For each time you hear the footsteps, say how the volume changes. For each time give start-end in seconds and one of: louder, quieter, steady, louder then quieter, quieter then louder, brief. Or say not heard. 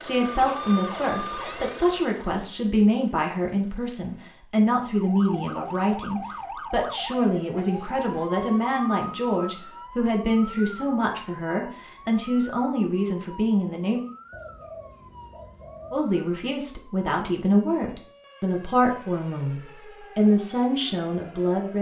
not heard.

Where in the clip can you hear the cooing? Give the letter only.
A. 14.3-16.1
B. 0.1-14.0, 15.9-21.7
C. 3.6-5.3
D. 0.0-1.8
A.